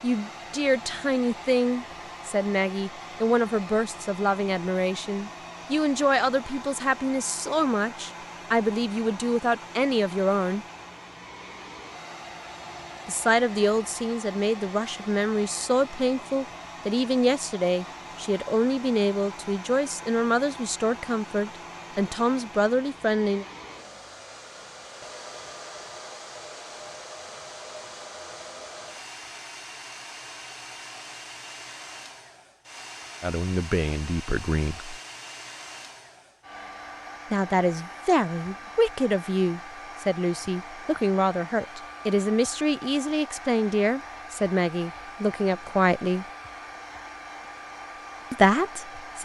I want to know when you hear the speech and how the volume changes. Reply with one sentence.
You can hear the speech from 0.0 to 10.7 s, at a steady volume; from 13.1 to 23.4 s, at a steady volume; briefly from 33.2 to 35.0 s; from 37.3 to 46.2 s, at a steady volume; and briefly from 48.3 to 49.2 s.